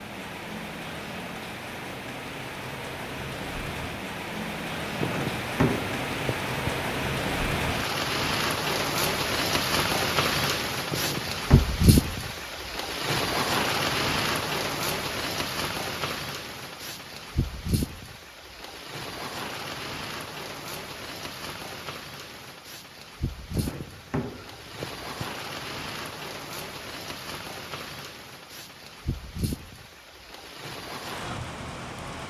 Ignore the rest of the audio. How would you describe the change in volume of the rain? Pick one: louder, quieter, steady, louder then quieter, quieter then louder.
louder then quieter.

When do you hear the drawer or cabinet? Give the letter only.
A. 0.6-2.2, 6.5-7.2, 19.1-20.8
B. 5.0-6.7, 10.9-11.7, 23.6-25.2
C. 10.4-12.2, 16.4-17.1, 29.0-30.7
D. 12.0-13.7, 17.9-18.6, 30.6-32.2
B.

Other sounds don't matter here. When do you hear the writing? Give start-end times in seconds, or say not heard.
not heard.